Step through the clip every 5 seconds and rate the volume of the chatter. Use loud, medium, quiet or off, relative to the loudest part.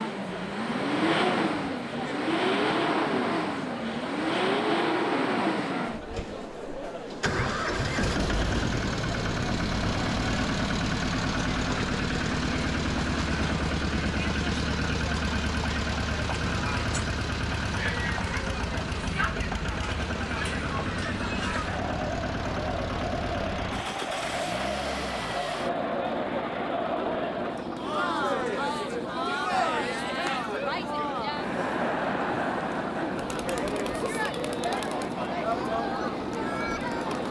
medium, medium, medium, medium, loud, loud, loud, loud.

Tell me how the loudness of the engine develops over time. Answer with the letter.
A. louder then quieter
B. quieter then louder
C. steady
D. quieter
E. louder
D.